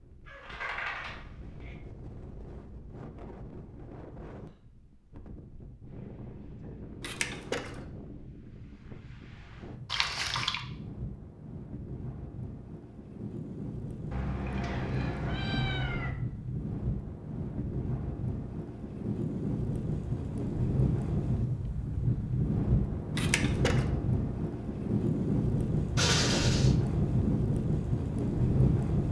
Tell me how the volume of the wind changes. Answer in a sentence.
The loudness of the wind goes up.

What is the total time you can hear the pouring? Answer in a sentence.
The pouring can be heard for 2 seconds in total.